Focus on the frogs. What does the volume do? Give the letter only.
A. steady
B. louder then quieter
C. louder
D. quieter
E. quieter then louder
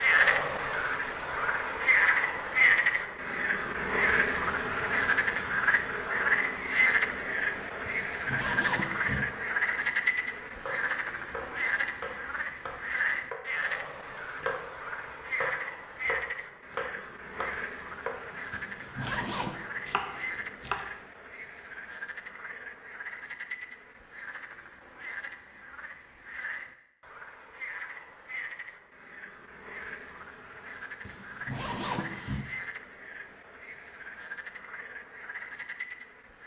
D.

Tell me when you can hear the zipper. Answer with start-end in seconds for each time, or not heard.
7.8-9.2, 18.5-19.6, 31.1-32.5.